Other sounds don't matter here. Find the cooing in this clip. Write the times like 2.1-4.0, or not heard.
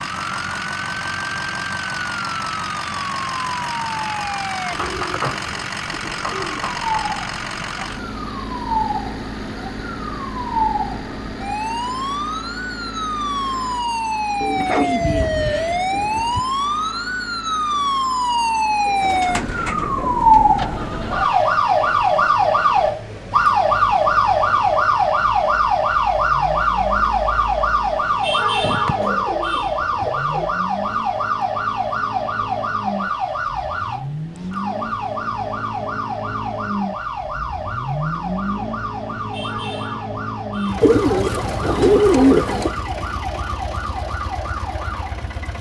4.7-7.0, 14.4-16.4, 18.9-20.6, 28.6-30.4, 40.8-42.8.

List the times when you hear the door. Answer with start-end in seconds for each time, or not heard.
not heard.